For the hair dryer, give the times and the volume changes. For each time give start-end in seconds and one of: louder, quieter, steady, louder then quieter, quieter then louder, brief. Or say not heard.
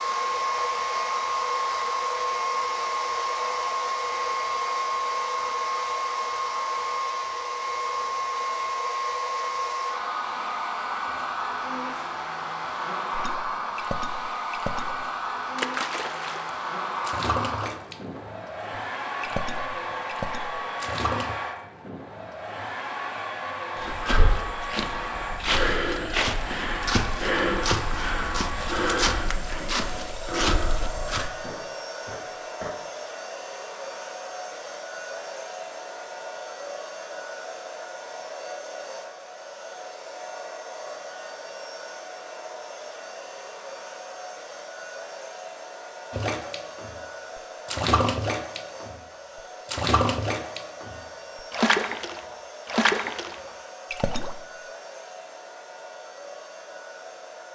0.0-57.5 quieter.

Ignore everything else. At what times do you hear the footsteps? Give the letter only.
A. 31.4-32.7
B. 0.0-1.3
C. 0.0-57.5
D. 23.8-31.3
D.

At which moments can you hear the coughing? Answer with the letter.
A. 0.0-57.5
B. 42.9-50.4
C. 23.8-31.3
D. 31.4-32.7
D.